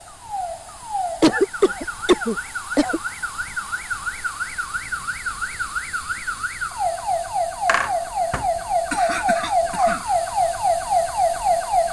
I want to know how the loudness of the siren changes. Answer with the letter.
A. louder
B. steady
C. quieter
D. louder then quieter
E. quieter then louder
A.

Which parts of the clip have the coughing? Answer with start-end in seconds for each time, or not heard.
1.2-3.0, 7.7-10.0.